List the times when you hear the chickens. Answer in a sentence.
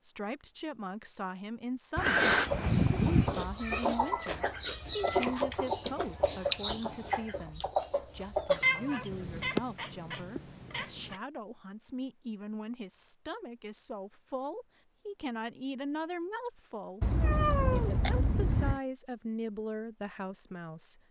You can hear the chickens from 2.0 to 9.5 s.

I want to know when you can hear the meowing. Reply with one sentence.
The meowing can be heard from 1.9 to 3.5 s, from 8.6 to 11.2 s and from 17.0 to 18.8 s.